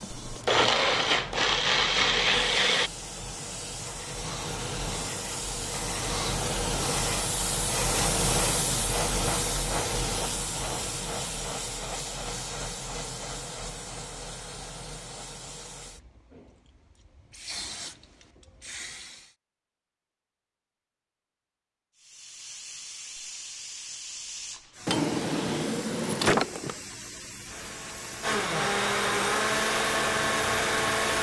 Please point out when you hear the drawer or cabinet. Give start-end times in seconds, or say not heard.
24.9-26.8.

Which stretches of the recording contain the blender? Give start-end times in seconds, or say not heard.
0.0-2.9, 27.5-31.1.